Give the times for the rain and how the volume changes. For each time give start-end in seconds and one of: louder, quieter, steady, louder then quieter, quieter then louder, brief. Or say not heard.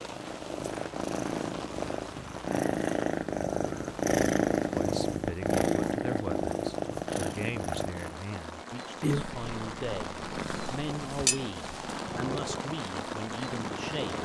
0.0-14.2 quieter then louder.